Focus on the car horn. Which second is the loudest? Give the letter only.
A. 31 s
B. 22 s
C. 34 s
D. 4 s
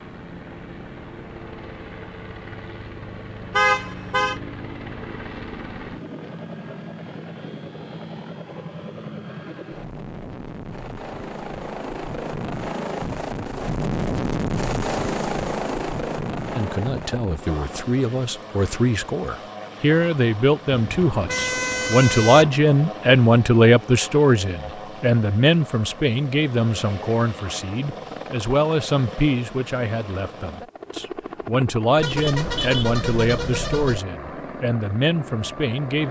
D.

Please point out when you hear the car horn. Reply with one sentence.
You can hear the car horn from 3.5 to 4.3 s, from 20.7 to 22.5 s and from 31.9 to 34.0 s.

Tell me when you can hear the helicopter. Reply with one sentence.
You can hear the helicopter from 0.0 to 36.0 s.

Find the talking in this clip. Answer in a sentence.
You can hear the talking from 16.6 to 36.0 s.